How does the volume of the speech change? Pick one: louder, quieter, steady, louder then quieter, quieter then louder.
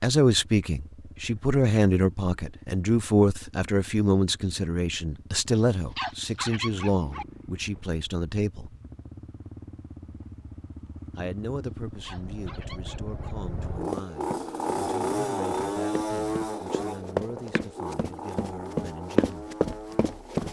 quieter.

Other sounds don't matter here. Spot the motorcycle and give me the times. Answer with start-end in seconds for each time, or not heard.
0.2-20.4.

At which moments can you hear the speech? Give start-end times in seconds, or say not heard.
0.0-8.8, 11.2-19.6.